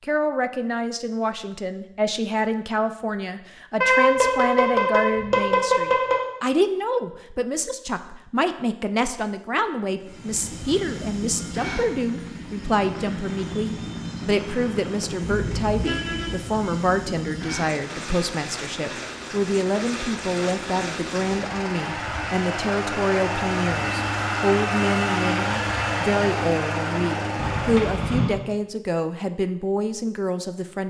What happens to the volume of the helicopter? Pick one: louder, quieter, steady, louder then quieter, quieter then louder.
louder.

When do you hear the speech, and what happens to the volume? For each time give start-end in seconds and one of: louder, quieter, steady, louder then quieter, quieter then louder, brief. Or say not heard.
0.0-30.8 steady.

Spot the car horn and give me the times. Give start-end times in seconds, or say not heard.
3.8-6.2, 15.3-16.4, 27.4-28.4.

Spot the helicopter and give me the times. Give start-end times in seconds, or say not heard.
9.9-27.9.